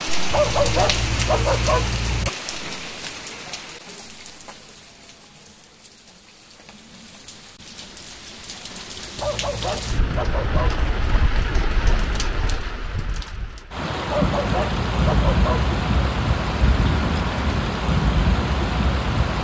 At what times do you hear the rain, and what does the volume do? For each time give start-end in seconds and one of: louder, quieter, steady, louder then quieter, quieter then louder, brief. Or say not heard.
0.0-19.3 quieter then louder.